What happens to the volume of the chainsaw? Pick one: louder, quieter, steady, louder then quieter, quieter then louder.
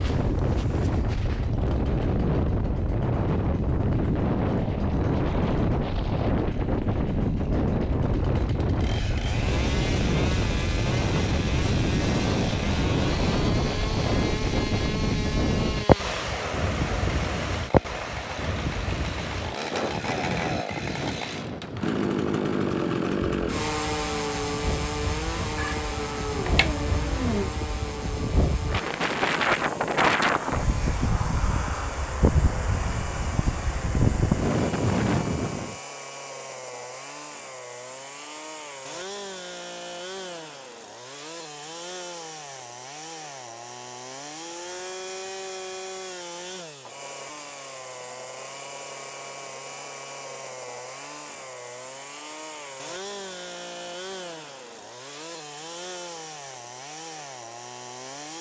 louder then quieter.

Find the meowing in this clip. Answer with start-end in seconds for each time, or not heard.
25.6-27.5.